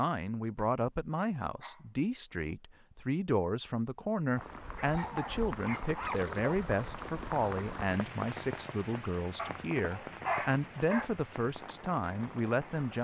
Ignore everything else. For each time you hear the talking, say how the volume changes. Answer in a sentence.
You can hear the talking from 0.0 to 12.9 s, at a steady volume.